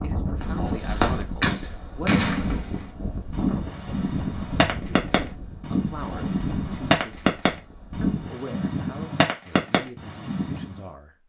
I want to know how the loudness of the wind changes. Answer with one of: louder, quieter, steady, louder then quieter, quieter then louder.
quieter.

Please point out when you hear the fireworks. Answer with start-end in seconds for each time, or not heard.
0.4-10.8.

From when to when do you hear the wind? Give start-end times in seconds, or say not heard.
0.0-8.3.